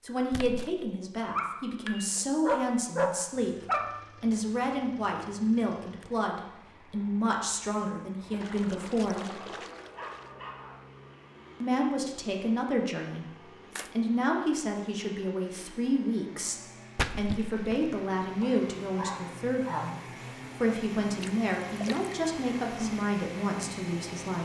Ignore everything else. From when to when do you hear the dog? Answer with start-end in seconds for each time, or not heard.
1.4-4.0, 9.3-10.8, 18.4-19.9.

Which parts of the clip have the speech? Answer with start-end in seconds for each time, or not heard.
0.0-9.4, 11.6-20.0, 20.6-24.4.